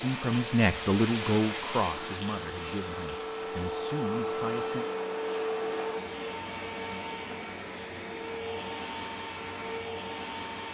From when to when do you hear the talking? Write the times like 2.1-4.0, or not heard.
0.0-4.8.